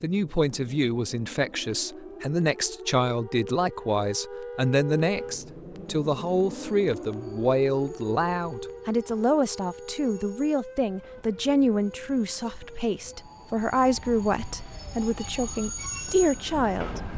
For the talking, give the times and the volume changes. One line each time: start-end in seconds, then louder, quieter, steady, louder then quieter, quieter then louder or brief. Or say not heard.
0.0-17.0 steady.